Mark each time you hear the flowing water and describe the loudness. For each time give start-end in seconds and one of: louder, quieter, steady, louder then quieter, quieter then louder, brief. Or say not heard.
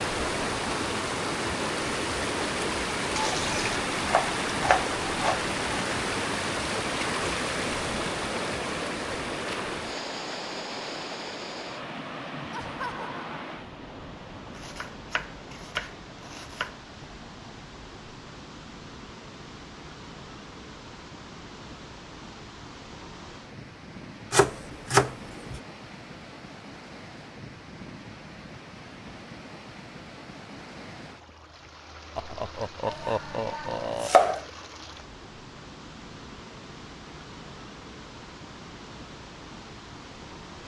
0.0-40.6 quieter.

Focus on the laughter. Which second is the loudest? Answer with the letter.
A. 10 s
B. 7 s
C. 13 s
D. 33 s
D.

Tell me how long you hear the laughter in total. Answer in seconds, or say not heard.
3 s.